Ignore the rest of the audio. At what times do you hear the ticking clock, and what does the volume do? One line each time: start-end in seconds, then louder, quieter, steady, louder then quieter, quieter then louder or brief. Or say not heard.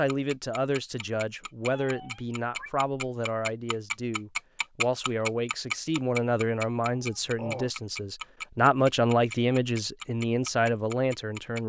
0.1-11.6 louder then quieter.